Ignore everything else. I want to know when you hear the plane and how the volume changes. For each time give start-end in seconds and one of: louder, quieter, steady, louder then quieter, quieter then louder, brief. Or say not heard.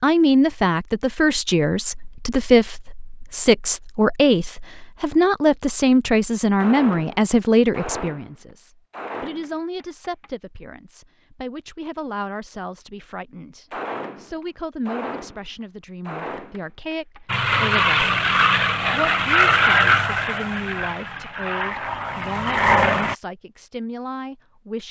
17.2-23.1 quieter then louder.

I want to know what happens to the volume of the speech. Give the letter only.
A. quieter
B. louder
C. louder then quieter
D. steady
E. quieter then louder
A.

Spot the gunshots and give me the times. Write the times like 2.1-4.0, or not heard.
6.5-10.3, 13.7-17.4.